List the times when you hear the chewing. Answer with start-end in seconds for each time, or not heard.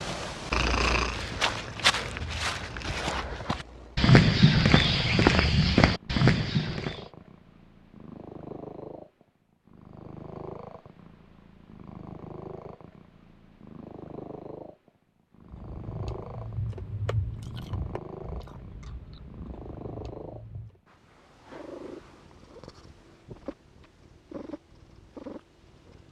15.4-20.8.